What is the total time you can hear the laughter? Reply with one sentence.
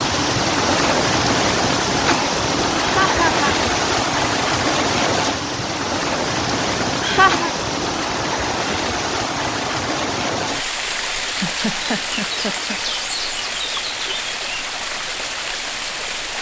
You can hear the laughter for 3 seconds altogether.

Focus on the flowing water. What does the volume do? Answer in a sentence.
The loudness of the flowing water goes down.